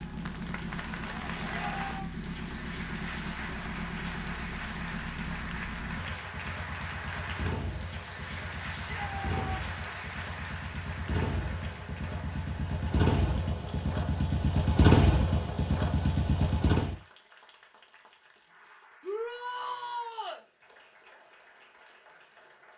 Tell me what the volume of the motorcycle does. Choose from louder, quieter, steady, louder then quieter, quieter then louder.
louder.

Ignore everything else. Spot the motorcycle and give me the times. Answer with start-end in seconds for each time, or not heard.
0.0-16.9.